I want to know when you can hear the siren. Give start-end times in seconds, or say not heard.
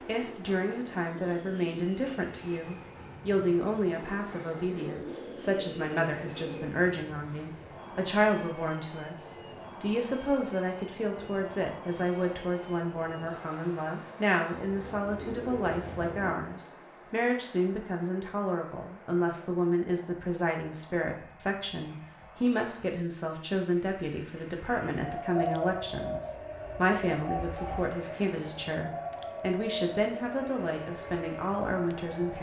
25.0-32.3.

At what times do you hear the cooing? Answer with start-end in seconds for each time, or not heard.
4.7-6.7, 14.7-16.4, 25.4-27.9.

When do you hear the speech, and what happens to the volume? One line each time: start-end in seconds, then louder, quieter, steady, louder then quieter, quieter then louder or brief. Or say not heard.
0.0-32.3 steady.